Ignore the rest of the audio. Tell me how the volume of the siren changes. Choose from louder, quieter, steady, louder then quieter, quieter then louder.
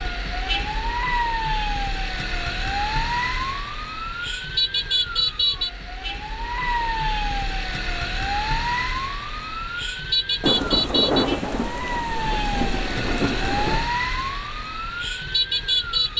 steady.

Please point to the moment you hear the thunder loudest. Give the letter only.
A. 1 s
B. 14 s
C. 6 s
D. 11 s
D.